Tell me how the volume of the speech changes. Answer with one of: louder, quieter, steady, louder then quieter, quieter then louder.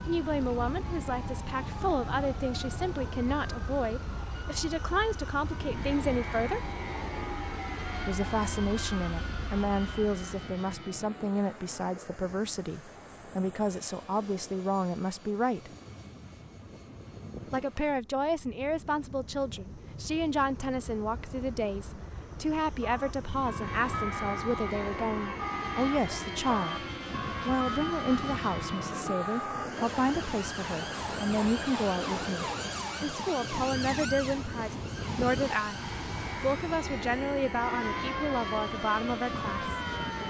steady.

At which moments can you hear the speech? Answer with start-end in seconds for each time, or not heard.
0.1-6.6, 8.1-15.7, 17.5-26.9, 27.4-35.8, 36.4-39.8.